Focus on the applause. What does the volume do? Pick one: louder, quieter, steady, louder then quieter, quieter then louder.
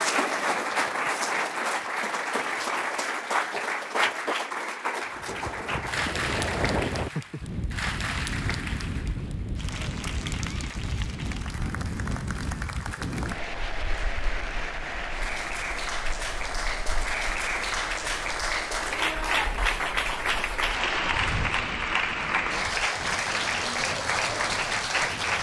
quieter then louder.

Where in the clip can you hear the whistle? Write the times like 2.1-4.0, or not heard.
not heard.